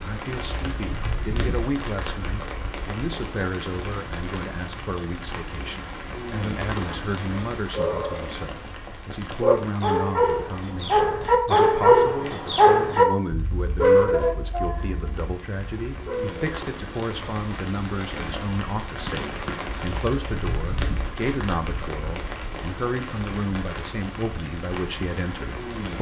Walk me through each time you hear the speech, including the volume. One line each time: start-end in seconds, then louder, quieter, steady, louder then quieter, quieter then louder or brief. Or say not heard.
0.0-25.9 steady.